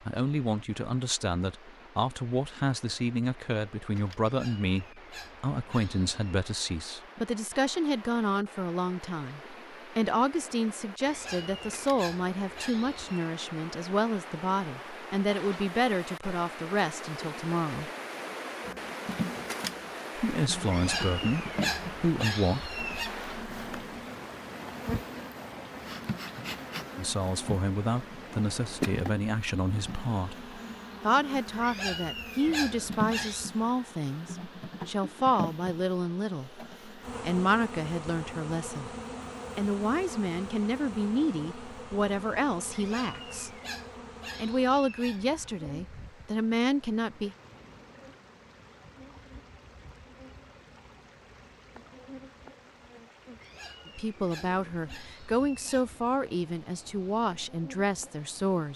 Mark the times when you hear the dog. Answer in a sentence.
The dog can be heard from 4.2 to 6.2 s, from 11.1 to 13.2 s, from 20.7 to 23.1 s, from 31.6 to 33.5 s, from 42.7 to 45.4 s and from 53.4 to 56.0 s.